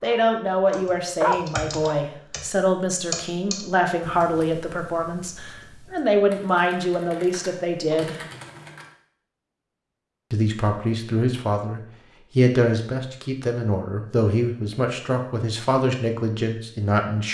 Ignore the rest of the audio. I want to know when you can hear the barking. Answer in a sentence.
You can hear the barking from 0.0 to 2.0 s.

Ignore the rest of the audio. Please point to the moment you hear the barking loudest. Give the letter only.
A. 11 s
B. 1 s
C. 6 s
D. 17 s
B.